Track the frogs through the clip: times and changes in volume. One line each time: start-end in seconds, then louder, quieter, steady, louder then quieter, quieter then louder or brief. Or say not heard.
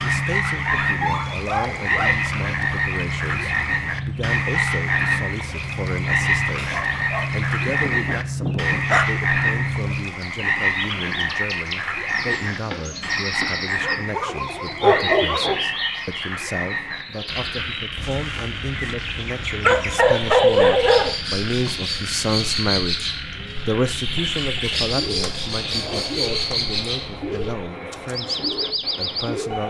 0.0-29.6 quieter.